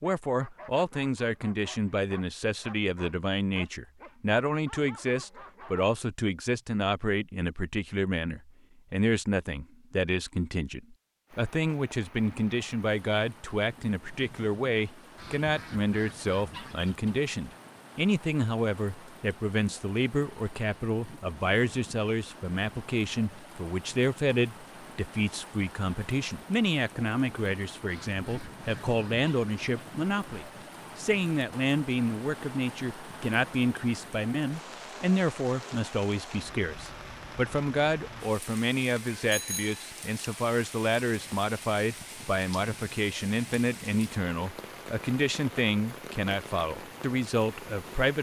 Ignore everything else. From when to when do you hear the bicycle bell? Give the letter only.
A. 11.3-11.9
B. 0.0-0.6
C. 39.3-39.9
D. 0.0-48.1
C.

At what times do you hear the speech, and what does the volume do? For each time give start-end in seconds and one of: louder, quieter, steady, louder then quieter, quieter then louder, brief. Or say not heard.
0.0-48.1 steady.